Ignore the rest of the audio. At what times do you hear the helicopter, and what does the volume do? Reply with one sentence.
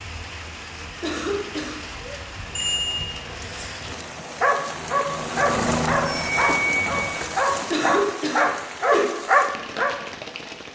You can hear the helicopter from 2.5 to 7.6 s, getting louder then quieter.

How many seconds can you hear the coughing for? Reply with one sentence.
You can hear the coughing for 3 seconds altogether.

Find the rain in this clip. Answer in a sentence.
The rain can be heard from 0.0 to 10.7 s.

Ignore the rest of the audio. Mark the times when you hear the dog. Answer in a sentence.
The dog can be heard from 4.4 to 9.9 s.